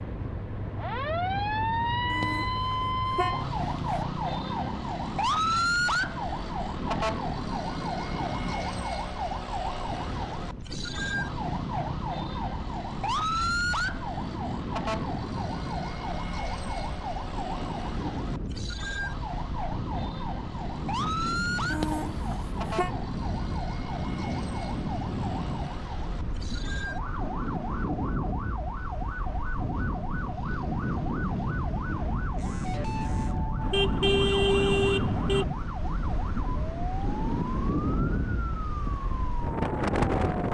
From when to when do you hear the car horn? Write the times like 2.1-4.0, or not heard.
2.1-4.0, 21.7-22.9, 33.6-35.5.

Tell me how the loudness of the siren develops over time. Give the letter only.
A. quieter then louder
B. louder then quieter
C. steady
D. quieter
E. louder
D.